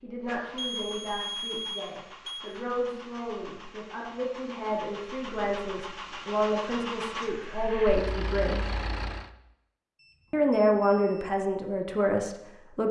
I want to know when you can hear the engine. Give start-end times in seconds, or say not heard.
0.1-9.3.